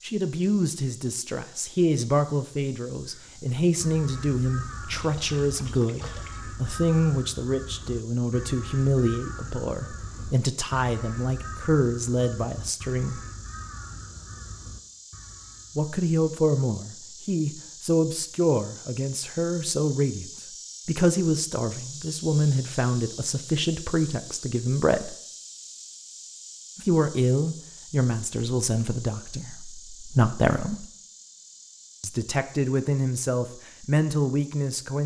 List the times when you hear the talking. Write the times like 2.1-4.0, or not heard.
0.0-13.2, 15.8-20.2, 20.9-25.1, 26.8-30.9, 32.0-35.0.